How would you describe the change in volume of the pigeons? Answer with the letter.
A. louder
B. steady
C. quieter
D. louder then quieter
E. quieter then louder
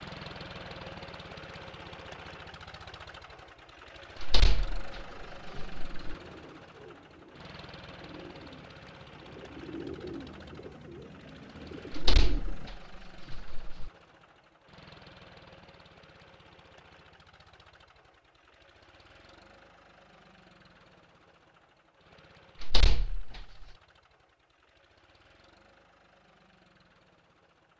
A.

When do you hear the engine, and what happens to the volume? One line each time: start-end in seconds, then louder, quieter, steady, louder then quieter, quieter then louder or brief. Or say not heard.
0.0-27.7 quieter.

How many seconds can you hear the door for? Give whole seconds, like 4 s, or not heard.
5 s.